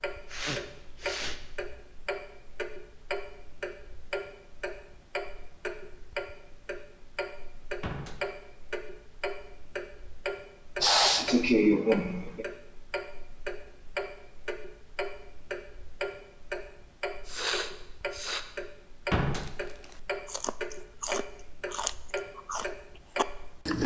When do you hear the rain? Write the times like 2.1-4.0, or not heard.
not heard.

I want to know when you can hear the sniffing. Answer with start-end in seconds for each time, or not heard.
0.3-1.8, 10.8-12.4, 17.2-18.4.